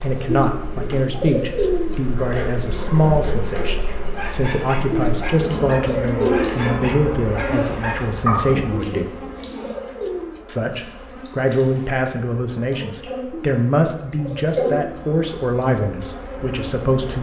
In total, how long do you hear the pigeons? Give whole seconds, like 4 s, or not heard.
7 s.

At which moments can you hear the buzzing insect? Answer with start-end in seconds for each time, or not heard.
0.0-17.1.